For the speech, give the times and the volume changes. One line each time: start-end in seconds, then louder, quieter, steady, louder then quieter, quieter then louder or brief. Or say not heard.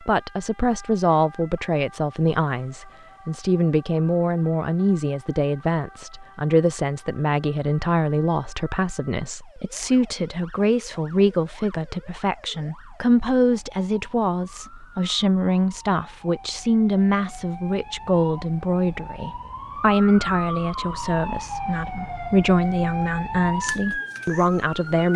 0.0-25.1 steady.